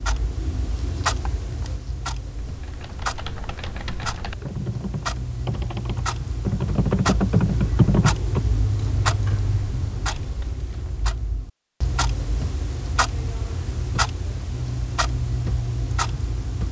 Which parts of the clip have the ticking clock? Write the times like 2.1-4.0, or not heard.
0.0-16.6.